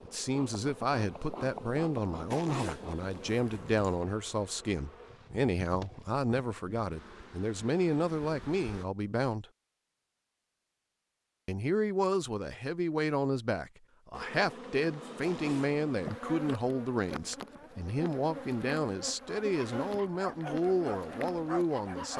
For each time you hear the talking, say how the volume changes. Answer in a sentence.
The talking can be heard from 0.0 to 9.4 s, at a steady volume; and from 11.4 to 22.1 s, at a steady volume.